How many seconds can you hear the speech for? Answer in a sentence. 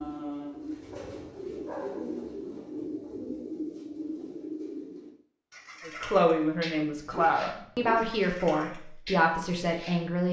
The speech can be heard for 4 seconds in total.